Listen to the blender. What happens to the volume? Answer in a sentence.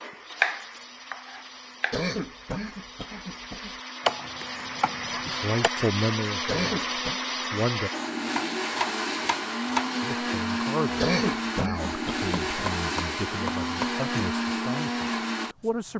The volume of the blender goes up.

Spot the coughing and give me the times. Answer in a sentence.
You can hear the coughing from 1.9 to 3.8 s, from 6.5 to 7.2 s and from 10.9 to 12.8 s.